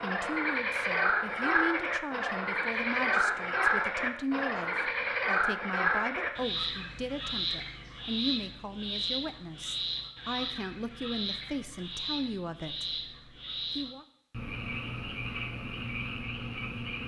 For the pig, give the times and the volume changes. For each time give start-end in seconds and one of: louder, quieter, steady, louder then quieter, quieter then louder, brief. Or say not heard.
not heard.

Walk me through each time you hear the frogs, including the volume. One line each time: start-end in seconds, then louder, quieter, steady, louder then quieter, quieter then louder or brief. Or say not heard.
0.0-17.0 quieter.